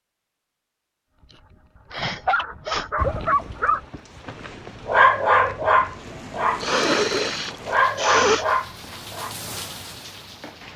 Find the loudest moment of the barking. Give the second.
5 s.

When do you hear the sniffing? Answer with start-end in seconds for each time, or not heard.
1.9-2.9, 6.6-8.4.